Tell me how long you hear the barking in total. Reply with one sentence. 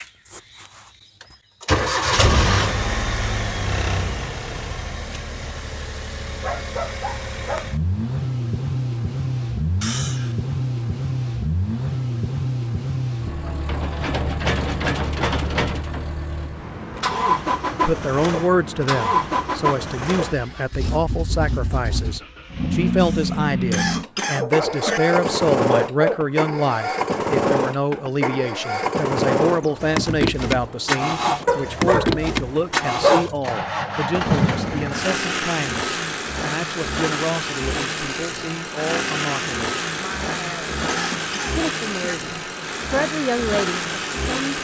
The barking can be heard for 5 seconds in total.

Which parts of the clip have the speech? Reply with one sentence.
You can hear the speech from 17.7 to 44.5 s.